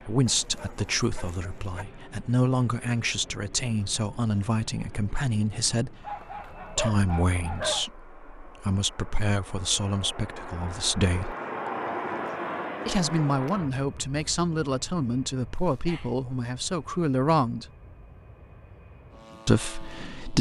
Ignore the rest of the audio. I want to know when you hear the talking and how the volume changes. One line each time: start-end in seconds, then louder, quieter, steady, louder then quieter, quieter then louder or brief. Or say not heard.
0.1-11.3 steady
12.8-17.6 steady
19.4-20.3 brief.